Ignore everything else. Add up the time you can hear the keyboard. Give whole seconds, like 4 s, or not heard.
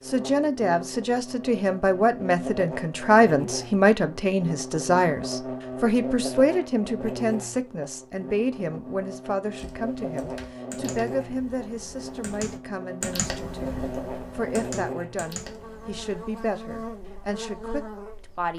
7 s.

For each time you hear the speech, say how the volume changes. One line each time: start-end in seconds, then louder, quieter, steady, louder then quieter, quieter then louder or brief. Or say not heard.
0.1-18.5 quieter.